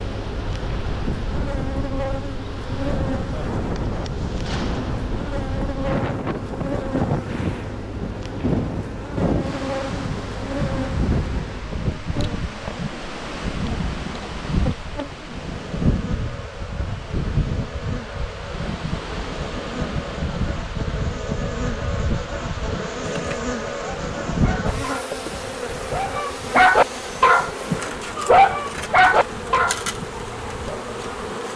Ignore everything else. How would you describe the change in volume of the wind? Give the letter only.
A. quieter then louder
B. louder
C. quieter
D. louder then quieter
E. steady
C.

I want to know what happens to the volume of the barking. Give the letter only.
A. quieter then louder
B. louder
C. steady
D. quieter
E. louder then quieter
B.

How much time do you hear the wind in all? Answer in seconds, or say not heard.
31 s.